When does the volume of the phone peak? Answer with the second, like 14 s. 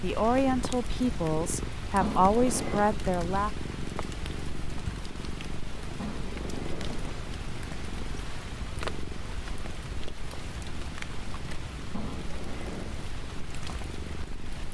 2 s.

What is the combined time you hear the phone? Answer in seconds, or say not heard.
3 s.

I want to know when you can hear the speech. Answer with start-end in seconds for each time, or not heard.
0.0-3.6.